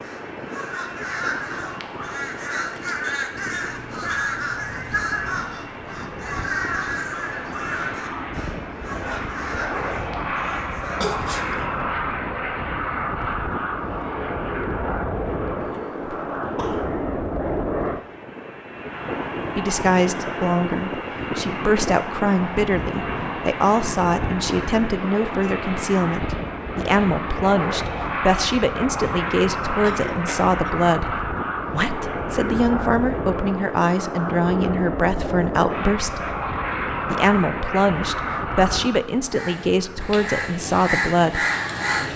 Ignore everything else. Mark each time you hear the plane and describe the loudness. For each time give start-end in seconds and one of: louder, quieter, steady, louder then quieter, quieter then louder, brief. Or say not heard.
0.0-42.1 louder.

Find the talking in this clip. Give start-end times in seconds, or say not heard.
19.6-36.4, 37.1-41.5.